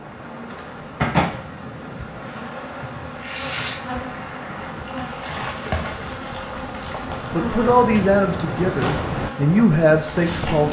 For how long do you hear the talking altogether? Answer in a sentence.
You can hear the talking for 3 seconds altogether.